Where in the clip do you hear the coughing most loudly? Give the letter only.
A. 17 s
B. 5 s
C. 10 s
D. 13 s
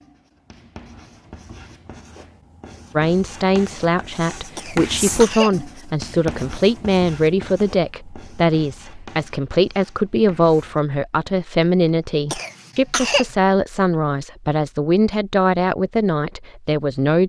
D.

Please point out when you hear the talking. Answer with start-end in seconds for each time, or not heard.
3.0-17.2.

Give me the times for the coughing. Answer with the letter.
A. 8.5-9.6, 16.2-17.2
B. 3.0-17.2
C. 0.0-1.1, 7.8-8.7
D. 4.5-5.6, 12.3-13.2
D.